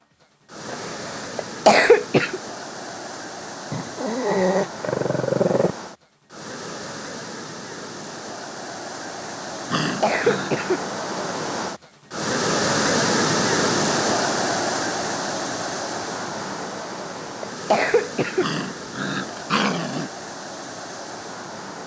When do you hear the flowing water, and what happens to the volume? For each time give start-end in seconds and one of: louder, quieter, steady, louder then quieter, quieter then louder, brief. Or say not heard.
0.0-21.8 louder then quieter.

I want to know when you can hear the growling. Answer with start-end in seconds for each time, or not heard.
3.7-5.8, 9.7-10.6, 18.4-20.1.